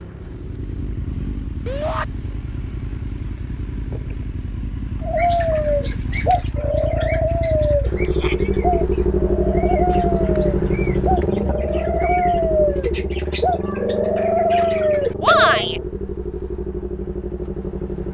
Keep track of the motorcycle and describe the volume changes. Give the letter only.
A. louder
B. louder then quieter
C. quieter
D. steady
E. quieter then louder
B.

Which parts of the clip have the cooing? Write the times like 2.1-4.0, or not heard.
5.0-15.7.